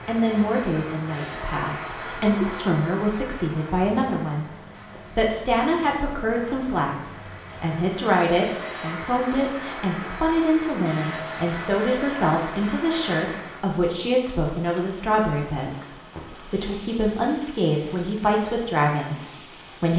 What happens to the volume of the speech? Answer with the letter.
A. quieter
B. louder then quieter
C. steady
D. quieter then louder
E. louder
C.